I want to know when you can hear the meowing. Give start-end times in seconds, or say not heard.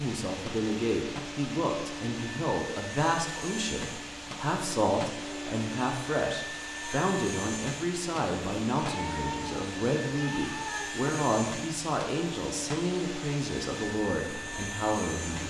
8.8-10.9.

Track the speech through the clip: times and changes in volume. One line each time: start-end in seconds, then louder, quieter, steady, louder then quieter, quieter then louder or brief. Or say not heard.
0.0-15.4 steady.